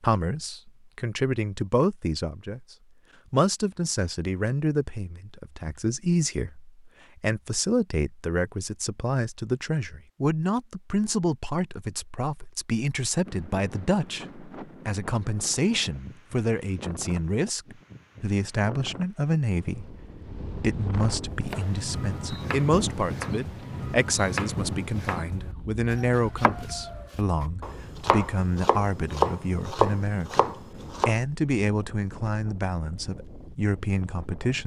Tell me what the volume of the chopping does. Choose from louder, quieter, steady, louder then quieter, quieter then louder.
louder.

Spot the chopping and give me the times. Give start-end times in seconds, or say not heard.
21.3-31.1.